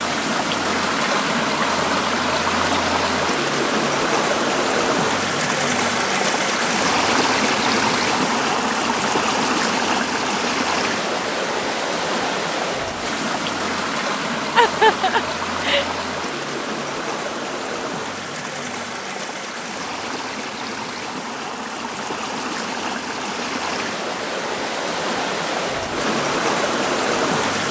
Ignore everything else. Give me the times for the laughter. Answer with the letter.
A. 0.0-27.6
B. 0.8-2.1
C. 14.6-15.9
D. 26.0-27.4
C.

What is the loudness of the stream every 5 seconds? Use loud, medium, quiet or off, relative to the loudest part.
loud, loud, loud, medium, medium, loud.